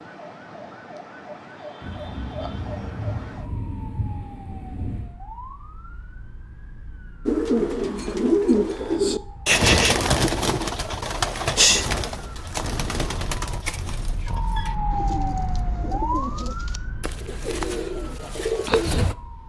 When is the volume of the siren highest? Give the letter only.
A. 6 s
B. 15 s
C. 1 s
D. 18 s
B.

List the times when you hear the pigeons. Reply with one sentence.
The pigeons can be heard from 7.2 to 19.1 s.